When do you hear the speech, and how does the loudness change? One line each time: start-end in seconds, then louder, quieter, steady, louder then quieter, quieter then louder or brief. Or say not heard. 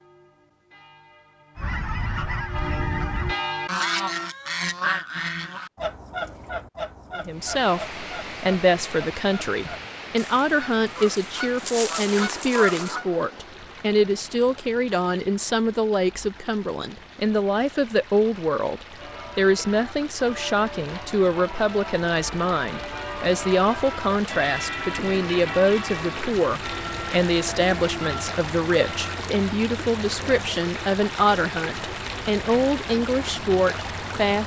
7.2-34.4 steady.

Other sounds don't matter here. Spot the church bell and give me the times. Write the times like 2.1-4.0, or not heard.
0.0-4.3, 18.9-29.1.